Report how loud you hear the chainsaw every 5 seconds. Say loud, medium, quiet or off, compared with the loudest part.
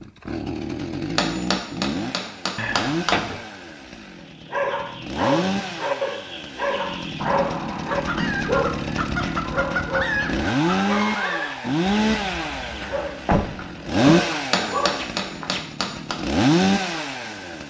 medium, medium, loud, loud.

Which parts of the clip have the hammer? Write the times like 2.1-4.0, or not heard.
1.1-3.1, 14.5-16.1.